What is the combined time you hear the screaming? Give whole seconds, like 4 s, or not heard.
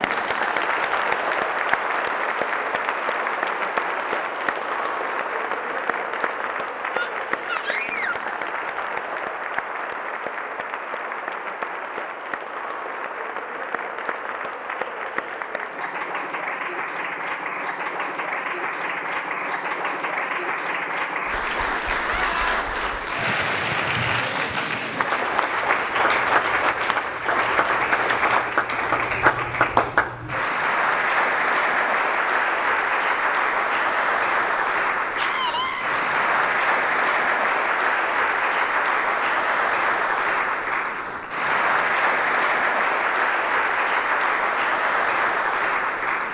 3 s.